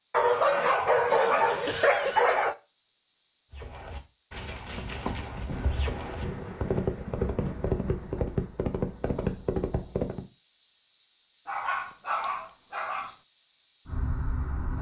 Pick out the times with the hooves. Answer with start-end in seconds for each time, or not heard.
3.5-10.2.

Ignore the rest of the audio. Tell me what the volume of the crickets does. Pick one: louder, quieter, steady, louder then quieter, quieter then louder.
louder.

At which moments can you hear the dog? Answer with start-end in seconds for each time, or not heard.
0.1-2.5, 11.4-13.2.